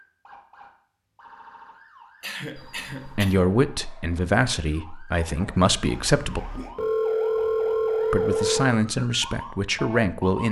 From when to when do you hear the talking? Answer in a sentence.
You can hear the talking from 3.0 to 6.4 s and from 8.1 to 10.4 s.